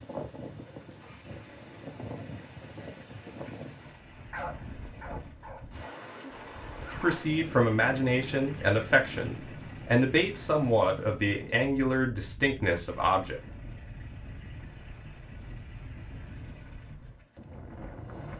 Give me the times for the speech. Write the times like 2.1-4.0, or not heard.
7.0-13.4.